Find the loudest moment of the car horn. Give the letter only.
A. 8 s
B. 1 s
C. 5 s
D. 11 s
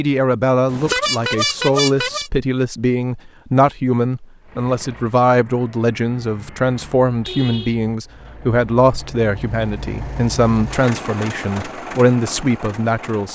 B.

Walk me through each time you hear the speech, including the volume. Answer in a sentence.
The speech can be heard from 0.0 to 13.3 s, at a steady volume.